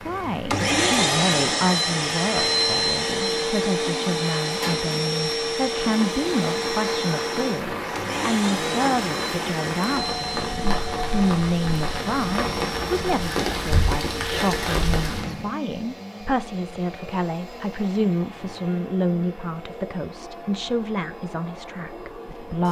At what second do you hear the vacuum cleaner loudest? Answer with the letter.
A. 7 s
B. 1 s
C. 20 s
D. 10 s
B.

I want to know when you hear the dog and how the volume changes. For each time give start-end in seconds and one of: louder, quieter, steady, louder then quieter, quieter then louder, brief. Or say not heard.
not heard.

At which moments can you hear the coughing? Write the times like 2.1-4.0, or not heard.
not heard.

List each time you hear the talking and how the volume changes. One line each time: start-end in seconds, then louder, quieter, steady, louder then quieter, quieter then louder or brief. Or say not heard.
0.0-22.6 steady.